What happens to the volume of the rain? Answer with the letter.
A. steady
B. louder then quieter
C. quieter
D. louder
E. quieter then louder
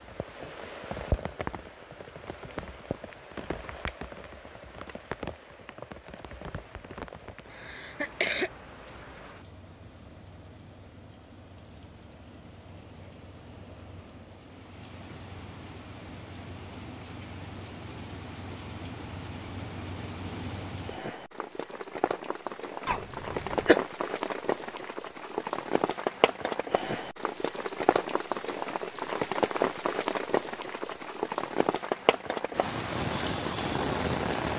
E.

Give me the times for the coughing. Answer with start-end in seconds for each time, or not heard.
7.5-8.5, 22.9-23.8.